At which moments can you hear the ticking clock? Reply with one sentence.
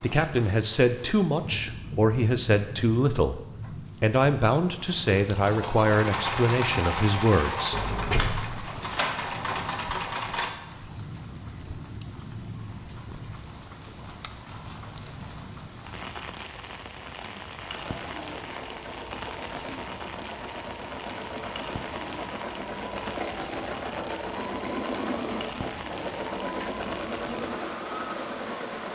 The ticking clock can't be heard in this clip.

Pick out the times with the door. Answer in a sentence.
The door can be heard from 7.7 to 9.8 s.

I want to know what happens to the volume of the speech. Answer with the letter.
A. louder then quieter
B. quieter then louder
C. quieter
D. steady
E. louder
D.